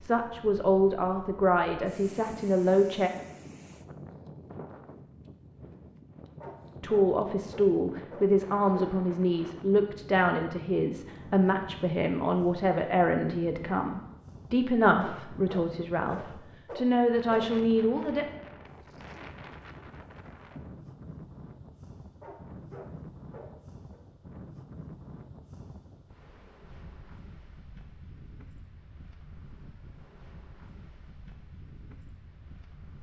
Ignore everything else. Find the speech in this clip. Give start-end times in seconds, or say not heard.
0.0-3.1, 6.8-18.2.